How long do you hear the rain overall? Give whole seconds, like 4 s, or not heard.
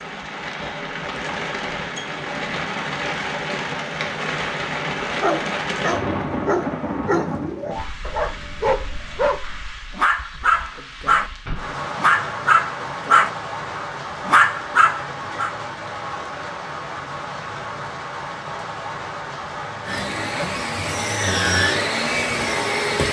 23 s.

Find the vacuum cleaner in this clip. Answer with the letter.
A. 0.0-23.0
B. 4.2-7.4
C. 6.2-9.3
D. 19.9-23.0
D.